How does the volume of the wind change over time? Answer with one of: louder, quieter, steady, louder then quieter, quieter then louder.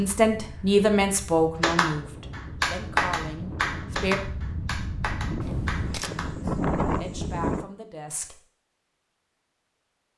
louder.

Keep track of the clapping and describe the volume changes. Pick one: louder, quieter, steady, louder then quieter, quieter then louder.
quieter.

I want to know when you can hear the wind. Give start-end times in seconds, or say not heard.
0.0-7.7.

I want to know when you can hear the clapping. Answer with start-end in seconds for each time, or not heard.
1.6-6.3.